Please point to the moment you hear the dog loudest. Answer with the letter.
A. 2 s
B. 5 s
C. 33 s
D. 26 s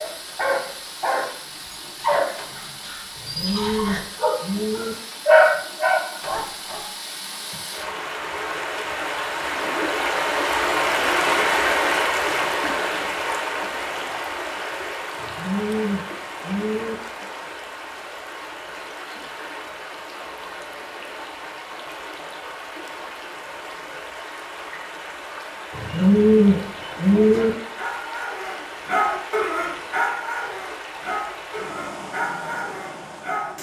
B.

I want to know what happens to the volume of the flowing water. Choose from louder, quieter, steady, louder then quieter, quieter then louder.
louder then quieter.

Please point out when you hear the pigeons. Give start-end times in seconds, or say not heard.
3.1-5.0, 15.2-16.9, 25.7-27.5.